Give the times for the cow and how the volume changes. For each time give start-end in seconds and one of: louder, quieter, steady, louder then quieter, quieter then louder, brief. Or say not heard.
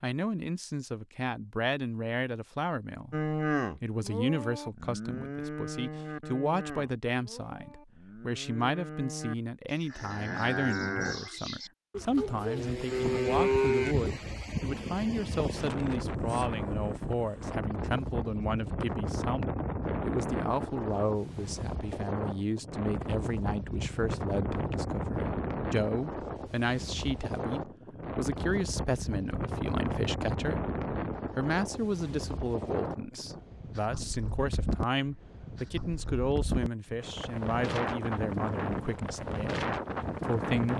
3.1-14.1 quieter then louder.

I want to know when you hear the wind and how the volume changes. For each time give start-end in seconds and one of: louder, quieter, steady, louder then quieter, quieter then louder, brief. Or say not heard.
12.4-40.7 steady.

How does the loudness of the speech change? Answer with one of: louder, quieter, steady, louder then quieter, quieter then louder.
steady.